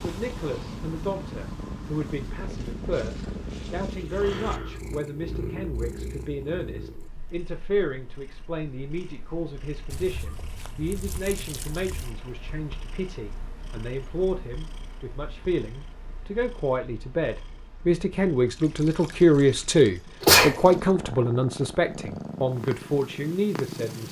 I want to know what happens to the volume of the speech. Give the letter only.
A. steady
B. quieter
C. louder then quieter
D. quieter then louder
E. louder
E.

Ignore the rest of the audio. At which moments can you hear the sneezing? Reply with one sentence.
The sneezing can be heard from 20.2 to 20.6 s.